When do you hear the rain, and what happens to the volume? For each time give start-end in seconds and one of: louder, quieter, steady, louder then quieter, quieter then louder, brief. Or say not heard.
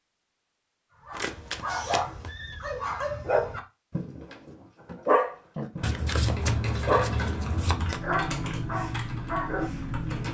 not heard.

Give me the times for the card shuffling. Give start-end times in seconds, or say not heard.
1.1-2.3, 5.8-8.0.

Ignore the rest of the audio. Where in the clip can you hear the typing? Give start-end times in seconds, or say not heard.
5.5-10.2.